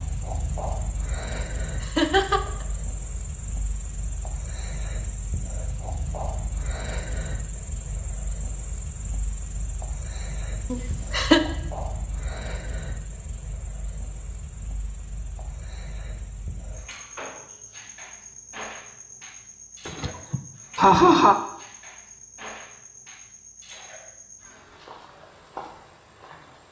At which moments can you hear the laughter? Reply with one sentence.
The laughter can be heard from 1.8 to 2.5 s, from 10.7 to 11.4 s and from 19.9 to 21.4 s.